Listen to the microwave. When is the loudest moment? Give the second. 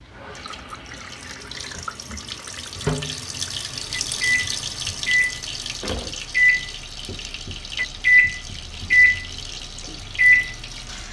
9 s.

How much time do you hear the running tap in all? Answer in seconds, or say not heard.
11 s.